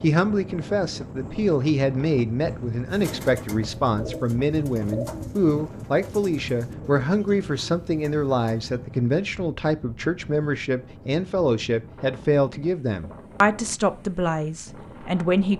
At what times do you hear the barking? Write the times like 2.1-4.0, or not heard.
not heard.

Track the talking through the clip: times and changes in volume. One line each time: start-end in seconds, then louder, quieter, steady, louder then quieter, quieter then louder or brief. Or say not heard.
0.0-15.5 steady.